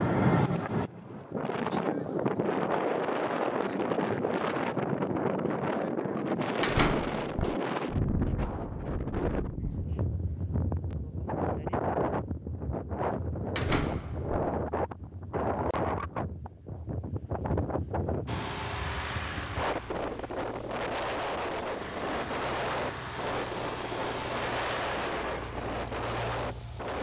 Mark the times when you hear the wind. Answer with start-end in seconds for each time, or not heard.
0.0-26.9.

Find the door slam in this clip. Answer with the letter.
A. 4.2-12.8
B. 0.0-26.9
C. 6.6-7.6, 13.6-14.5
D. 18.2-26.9
C.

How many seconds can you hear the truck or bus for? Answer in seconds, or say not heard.
9 s.